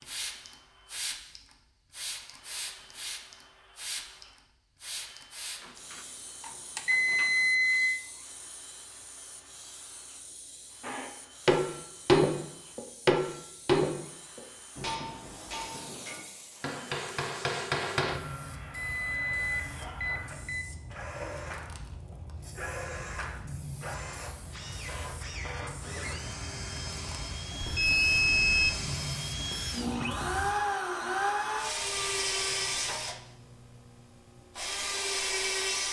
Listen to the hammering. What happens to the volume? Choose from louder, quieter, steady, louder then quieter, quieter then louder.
quieter then louder.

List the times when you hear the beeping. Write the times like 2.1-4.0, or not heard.
5.9-8.0, 18.7-20.6, 27.6-28.7.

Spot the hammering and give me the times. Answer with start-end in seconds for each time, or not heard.
10.8-18.2.